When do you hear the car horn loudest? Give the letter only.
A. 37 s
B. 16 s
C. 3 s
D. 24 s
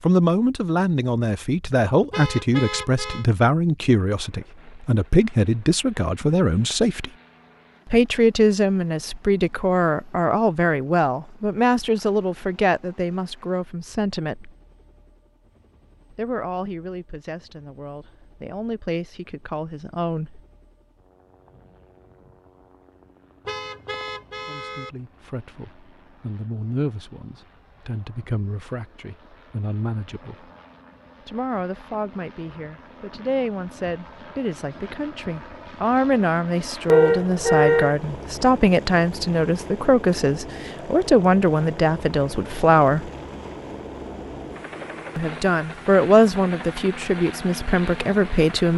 A.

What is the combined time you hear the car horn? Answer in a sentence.
You can hear the car horn for 4 seconds altogether.